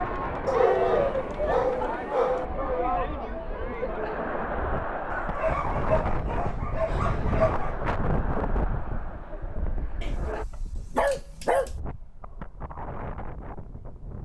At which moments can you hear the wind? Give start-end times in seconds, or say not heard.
0.0-14.2.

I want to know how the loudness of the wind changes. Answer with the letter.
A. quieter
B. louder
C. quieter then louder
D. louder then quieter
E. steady
D.